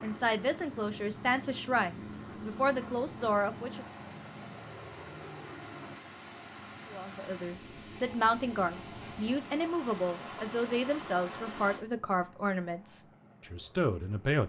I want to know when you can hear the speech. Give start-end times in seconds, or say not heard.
0.0-3.9, 6.9-14.4.